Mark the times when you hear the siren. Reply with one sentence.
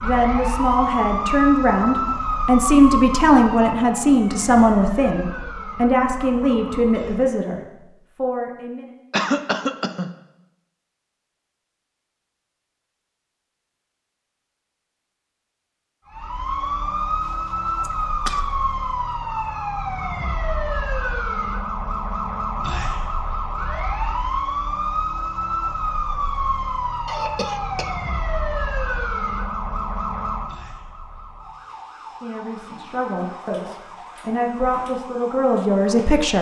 You can hear the siren from 0.0 to 7.2 s and from 16.1 to 36.3 s.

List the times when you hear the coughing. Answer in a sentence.
The coughing can be heard from 9.1 to 10.1 s, from 17.8 to 18.4 s and from 27.1 to 27.9 s.